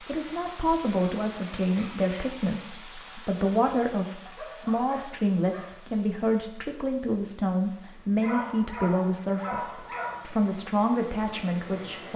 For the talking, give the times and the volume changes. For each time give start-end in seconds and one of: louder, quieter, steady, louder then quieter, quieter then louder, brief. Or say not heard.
0.0-12.1 steady.